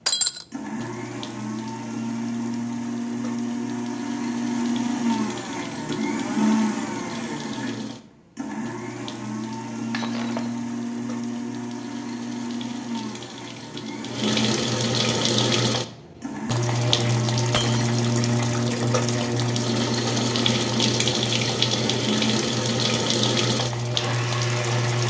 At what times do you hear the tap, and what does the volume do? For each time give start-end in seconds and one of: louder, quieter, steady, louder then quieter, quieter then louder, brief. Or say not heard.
0.0-25.0 louder.